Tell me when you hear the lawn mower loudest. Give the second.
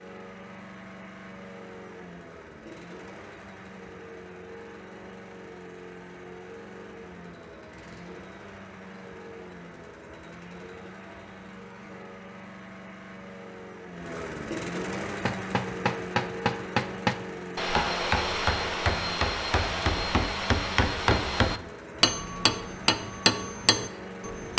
15 s.